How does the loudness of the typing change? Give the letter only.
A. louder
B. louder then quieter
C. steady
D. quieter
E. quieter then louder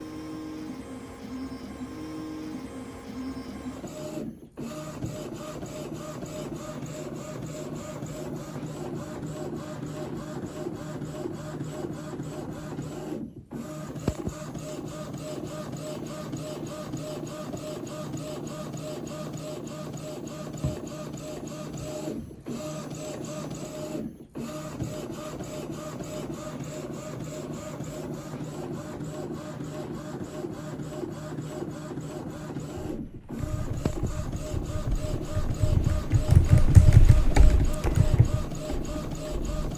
B.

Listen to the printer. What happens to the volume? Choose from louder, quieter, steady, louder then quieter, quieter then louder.
steady.